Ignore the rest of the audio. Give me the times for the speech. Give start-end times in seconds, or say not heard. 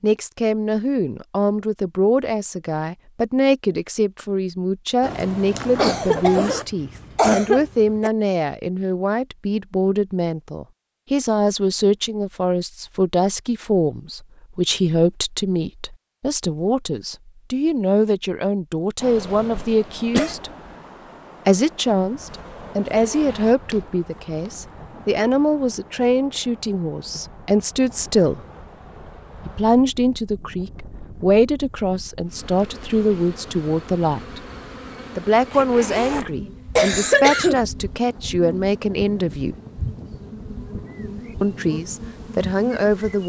0.0-20.5, 21.4-28.4, 29.4-34.4, 35.1-39.5, 41.4-43.2.